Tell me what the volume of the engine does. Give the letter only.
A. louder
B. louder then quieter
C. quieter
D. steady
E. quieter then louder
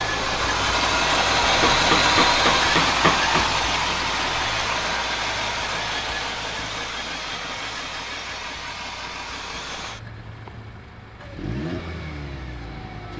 C.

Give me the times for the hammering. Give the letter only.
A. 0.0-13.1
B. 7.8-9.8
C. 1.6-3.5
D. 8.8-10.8
C.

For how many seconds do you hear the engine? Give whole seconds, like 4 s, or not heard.
13 s.